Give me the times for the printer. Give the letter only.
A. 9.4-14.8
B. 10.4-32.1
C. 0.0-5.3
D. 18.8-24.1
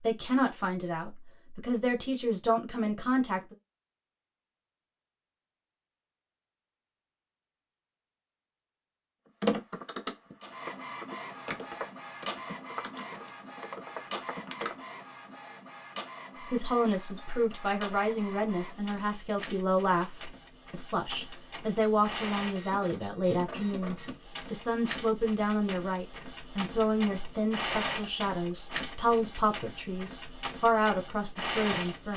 B.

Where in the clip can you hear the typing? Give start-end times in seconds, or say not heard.
9.4-14.8.